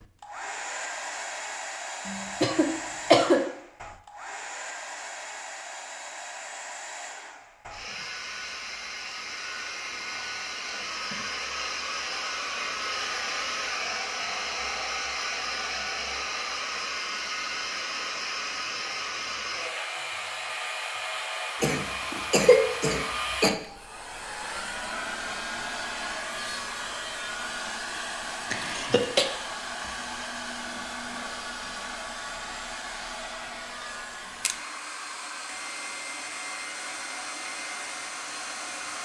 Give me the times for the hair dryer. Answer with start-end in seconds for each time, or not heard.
0.0-39.0.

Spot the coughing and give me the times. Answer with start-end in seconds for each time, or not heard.
2.0-3.4, 21.6-23.5, 28.5-29.2.